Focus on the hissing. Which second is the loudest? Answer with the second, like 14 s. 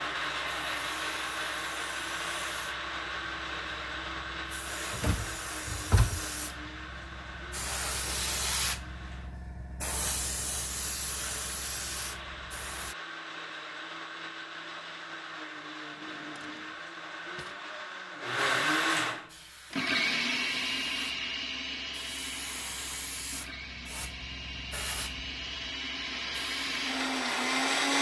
8 s.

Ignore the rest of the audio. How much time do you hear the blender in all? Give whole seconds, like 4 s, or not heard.
28 s.